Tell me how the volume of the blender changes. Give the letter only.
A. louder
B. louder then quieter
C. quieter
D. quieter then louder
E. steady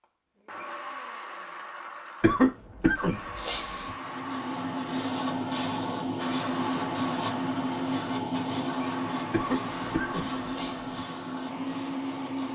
E.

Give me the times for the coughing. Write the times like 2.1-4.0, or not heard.
2.2-4.0, 9.3-11.1.